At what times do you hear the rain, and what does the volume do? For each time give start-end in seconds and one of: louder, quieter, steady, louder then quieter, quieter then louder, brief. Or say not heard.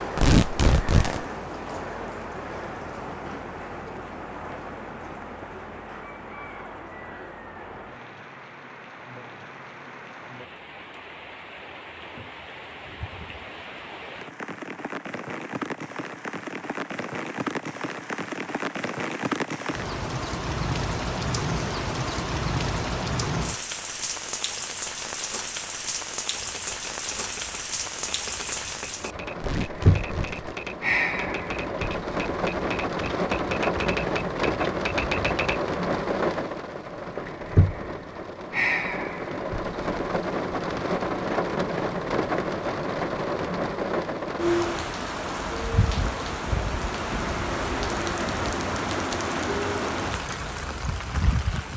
0.0-51.7 louder.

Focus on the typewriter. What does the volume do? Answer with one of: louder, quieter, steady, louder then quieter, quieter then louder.
louder.